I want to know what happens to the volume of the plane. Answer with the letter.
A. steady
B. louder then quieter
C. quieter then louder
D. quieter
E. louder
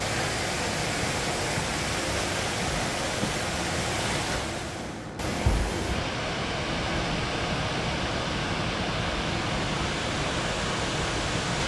A.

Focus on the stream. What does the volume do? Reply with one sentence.
The volume of the stream stays about the same.